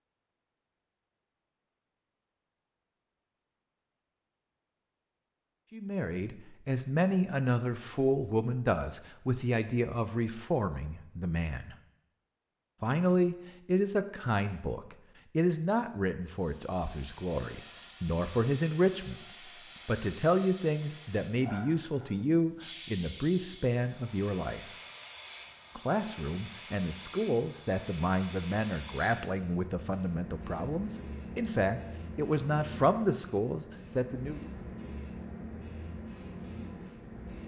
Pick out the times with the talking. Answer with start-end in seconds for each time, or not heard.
5.7-11.8, 12.8-19.2, 19.9-24.6, 25.8-34.5.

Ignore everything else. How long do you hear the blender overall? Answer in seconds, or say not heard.
not heard.